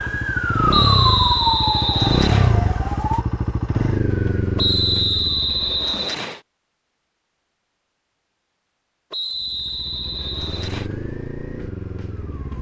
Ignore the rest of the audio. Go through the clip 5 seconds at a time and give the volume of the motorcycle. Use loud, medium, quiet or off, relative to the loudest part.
loud, quiet, medium.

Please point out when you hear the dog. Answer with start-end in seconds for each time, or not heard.
not heard.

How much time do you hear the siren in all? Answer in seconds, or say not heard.
3 s.